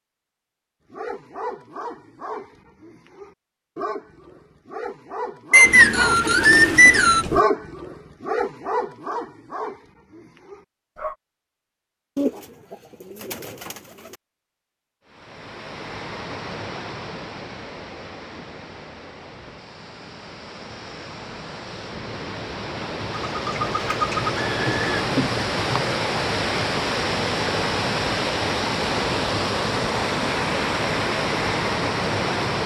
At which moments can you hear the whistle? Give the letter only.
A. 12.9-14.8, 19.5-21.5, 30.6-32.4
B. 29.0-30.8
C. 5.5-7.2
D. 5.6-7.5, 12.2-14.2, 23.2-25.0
C.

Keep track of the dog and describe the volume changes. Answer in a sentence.
The volume of the dog goes up, then down.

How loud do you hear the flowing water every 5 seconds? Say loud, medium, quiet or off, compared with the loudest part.
off, off, off, quiet, medium, loud, loud.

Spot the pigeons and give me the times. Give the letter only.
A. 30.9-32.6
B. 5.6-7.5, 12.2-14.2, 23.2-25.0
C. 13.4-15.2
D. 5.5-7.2
B.